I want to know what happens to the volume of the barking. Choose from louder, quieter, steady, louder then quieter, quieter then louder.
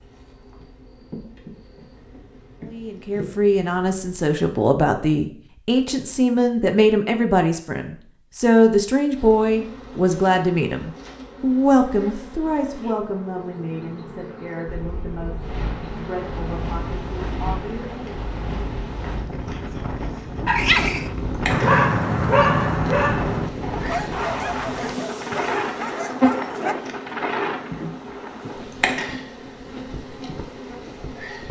quieter.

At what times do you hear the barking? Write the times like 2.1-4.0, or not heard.
20.4-26.8.